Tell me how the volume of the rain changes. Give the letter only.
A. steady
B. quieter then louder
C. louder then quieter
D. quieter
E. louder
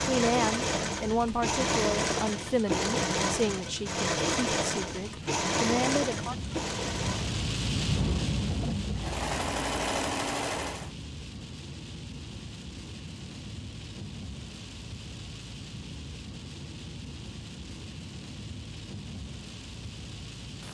C.